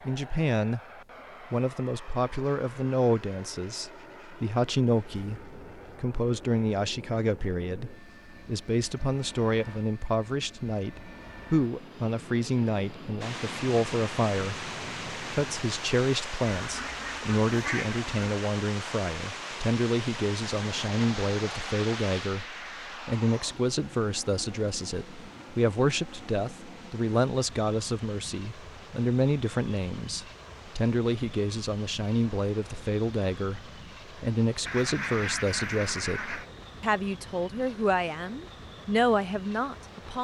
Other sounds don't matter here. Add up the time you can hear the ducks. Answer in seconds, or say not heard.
4 s.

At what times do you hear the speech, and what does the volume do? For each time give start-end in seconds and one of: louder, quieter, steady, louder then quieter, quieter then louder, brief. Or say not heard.
0.1-0.8 brief
1.5-40.2 steady.